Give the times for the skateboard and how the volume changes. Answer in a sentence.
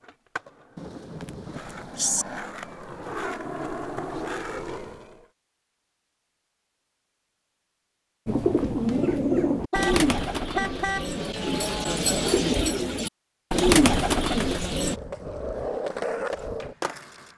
You can hear the skateboard from 0.0 to 5.2 s, getting louder; and briefly from 14.8 to 17.3 s.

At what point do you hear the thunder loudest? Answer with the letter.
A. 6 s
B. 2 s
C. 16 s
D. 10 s
B.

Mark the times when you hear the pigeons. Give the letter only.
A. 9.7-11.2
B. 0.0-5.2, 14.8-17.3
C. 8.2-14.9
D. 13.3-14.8
C.